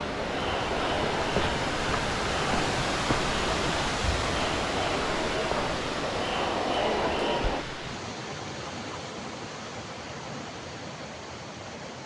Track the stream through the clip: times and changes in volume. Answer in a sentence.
You can hear the stream from 0.0 to 12.0 s, getting quieter.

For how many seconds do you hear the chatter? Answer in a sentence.
You can hear the chatter for 8 seconds altogether.